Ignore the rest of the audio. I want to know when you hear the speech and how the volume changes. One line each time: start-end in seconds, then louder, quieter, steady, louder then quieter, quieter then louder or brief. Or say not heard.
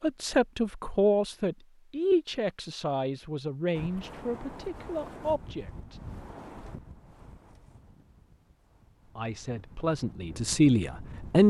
0.0-6.0 quieter
9.2-11.4 brief.